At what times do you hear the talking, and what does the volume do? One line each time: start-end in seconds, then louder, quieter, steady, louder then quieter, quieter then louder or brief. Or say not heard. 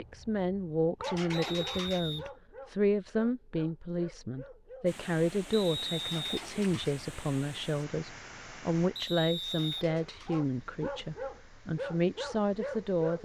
0.0-13.2 steady.